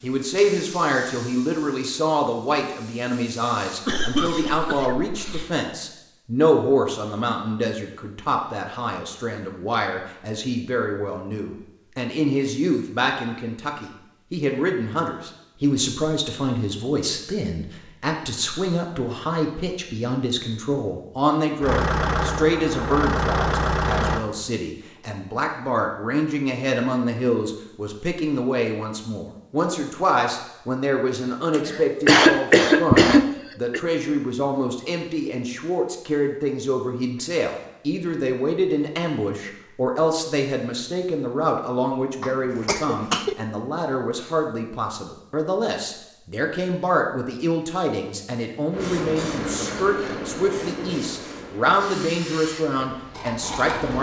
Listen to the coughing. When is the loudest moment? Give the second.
32 s.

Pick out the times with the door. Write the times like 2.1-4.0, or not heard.
not heard.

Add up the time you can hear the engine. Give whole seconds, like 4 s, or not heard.
3 s.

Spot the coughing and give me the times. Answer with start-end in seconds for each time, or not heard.
3.9-5.1, 31.5-33.8, 42.2-43.4.